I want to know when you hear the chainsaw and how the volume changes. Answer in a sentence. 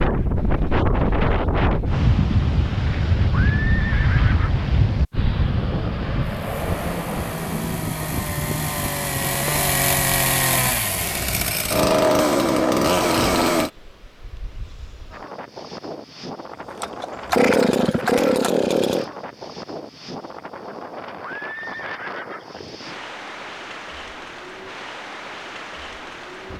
The chainsaw can be heard from 6.3 to 13.7 s, getting louder; and briefly from 16.8 to 19.1 s.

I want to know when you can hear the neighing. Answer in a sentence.
The neighing can be heard from 3.3 to 4.8 s and from 21.2 to 22.6 s.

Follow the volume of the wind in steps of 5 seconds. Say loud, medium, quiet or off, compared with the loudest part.
loud, medium, quiet, quiet, quiet, quiet.